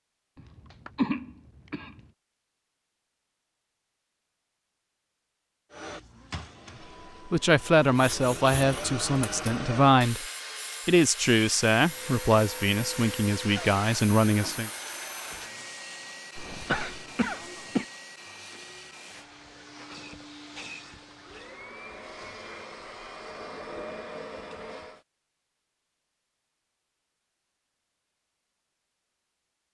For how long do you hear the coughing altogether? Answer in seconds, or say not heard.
3 s.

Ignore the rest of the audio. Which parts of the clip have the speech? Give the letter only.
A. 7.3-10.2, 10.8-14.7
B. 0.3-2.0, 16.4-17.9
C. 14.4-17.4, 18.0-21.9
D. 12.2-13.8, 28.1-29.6
A.